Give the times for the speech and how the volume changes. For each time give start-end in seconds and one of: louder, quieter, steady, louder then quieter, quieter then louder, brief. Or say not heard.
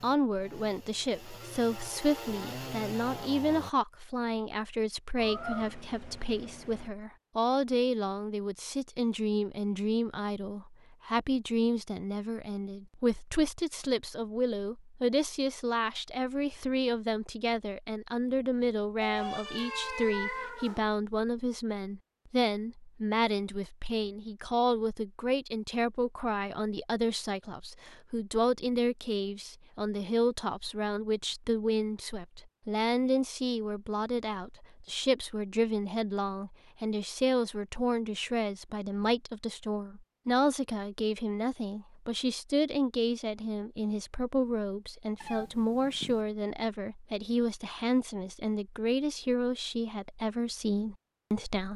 0.0-51.7 steady.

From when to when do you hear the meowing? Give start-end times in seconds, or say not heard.
5.2-6.9, 19.0-20.8, 45.2-46.2.